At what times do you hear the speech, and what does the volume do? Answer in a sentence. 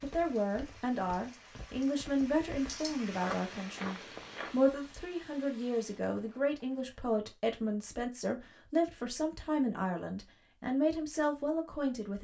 The speech can be heard from 0.0 to 12.1 s, at a steady volume.